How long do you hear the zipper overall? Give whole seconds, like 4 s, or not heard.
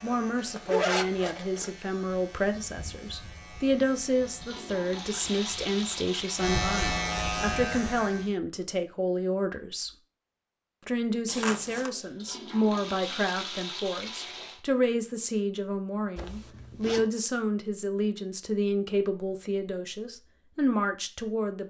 3 s.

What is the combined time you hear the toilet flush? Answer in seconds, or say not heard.
5 s.